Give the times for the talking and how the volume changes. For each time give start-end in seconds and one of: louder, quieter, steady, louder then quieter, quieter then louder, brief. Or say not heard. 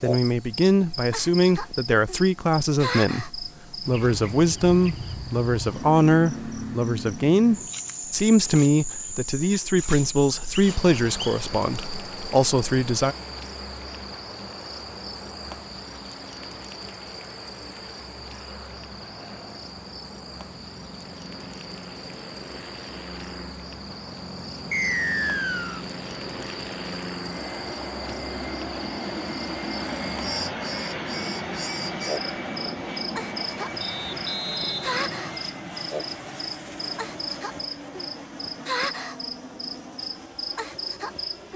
0.0-13.2 steady.